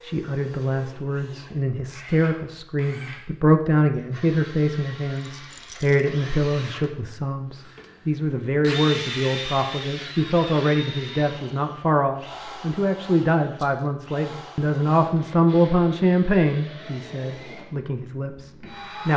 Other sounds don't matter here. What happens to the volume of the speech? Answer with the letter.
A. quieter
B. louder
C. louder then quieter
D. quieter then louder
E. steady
E.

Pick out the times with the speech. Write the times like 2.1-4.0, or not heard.
0.0-19.1.